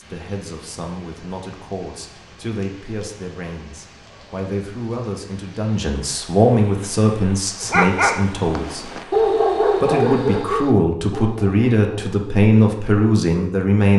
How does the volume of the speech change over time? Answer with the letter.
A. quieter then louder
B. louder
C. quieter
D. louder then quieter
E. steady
B.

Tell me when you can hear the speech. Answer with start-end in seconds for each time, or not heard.
0.0-8.9, 9.8-13.9.